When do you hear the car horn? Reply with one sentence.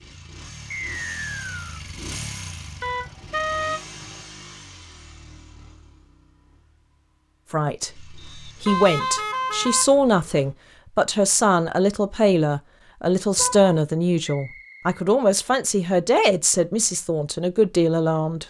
You can hear the car horn from 2.8 to 4.2 s, from 8.7 to 10.4 s and from 13.3 to 13.8 s.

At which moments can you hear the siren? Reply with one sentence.
The siren can't be heard in this clip.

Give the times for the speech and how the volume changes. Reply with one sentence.
The speech can be heard from 7.5 to 18.4 s, at a steady volume.